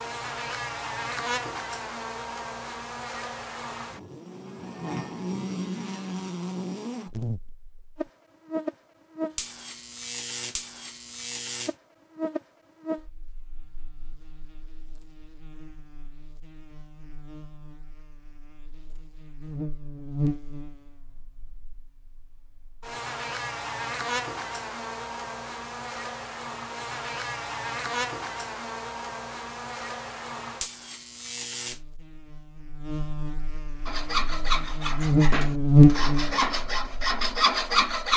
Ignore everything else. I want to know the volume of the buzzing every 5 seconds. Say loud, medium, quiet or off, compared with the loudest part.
quiet, quiet, quiet, quiet, quiet, quiet, quiet, loud.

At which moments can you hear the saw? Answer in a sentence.
You can hear the saw from 33.9 to 38.1 s.